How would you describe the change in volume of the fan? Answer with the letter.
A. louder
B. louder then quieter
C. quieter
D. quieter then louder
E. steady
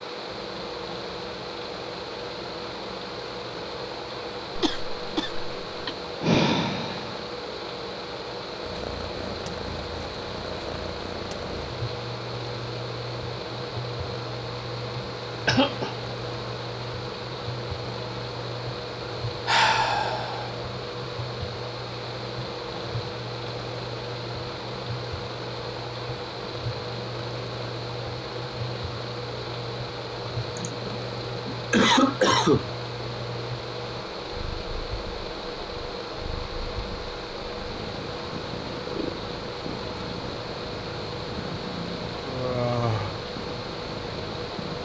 E.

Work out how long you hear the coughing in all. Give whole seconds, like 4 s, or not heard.
4 s.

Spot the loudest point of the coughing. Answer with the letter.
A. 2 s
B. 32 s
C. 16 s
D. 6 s
B.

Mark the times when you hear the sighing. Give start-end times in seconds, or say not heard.
6.2-7.2, 19.4-20.5, 41.1-43.1.